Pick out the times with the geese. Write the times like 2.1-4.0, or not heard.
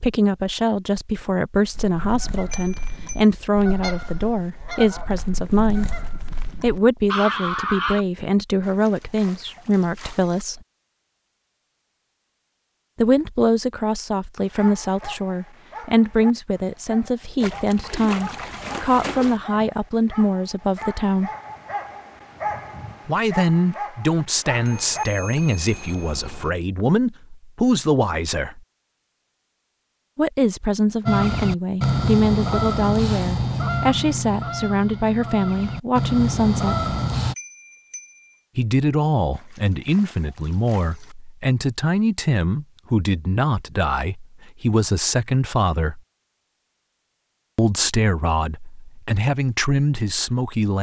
1.7-8.1, 31.1-37.4.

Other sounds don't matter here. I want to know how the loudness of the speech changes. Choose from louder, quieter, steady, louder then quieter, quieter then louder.
steady.